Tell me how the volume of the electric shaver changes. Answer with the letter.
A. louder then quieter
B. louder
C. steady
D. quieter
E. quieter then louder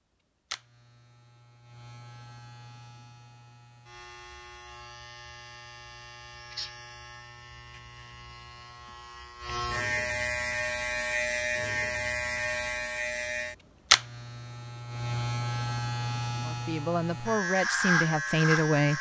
B.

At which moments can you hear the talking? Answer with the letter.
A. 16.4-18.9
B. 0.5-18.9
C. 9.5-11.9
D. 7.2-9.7
A.